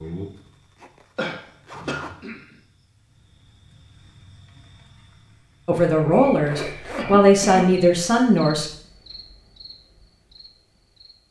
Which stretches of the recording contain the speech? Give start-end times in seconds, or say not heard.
5.7-8.7.